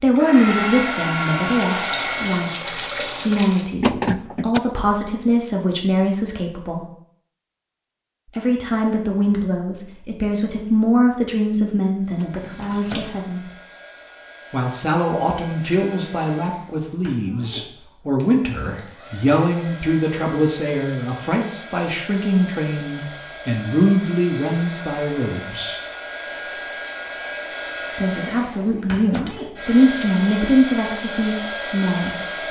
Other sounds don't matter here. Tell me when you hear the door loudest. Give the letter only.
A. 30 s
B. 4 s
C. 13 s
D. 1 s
B.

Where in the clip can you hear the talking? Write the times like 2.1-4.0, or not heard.
0.0-6.8, 8.3-13.5, 14.5-25.8, 27.9-32.4.